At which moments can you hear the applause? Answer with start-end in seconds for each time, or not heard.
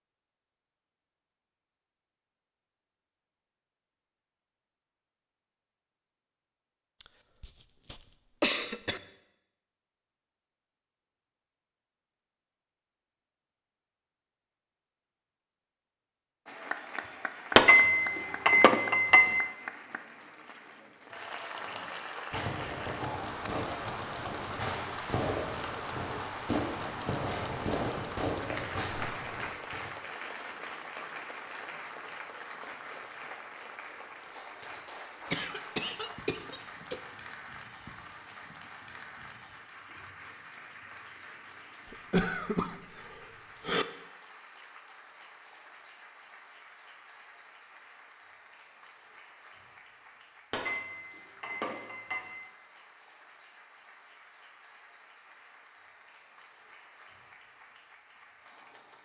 16.4-59.0.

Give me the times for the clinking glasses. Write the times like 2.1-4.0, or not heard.
17.6-19.4, 50.5-52.5.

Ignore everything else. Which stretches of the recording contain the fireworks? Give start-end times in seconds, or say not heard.
21.6-29.9.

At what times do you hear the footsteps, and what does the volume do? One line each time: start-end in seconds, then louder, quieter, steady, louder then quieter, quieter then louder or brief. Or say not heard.
not heard.